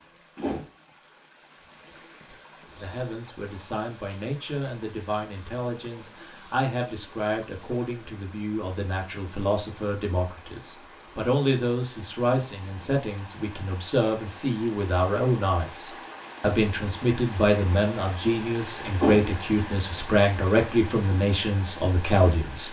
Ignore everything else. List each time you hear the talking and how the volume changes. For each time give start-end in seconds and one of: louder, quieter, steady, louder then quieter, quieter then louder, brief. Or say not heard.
2.8-22.6 louder.